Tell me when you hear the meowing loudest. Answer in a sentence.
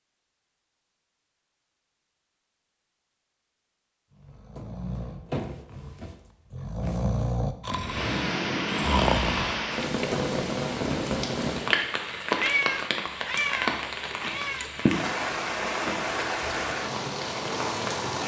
The volume of the meowing peaks at 13 seconds.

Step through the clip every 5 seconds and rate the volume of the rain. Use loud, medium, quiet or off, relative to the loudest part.
off, loud, loud, loud.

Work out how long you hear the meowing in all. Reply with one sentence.
The meowing can be heard for 2 seconds in total.